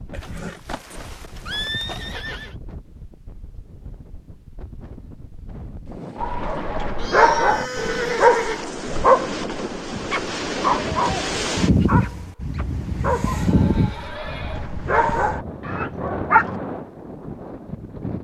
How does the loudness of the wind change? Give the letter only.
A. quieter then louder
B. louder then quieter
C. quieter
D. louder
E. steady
B.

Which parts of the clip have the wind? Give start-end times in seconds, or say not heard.
0.0-18.1.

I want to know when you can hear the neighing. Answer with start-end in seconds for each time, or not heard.
0.1-2.5, 7.0-8.7, 13.3-14.7.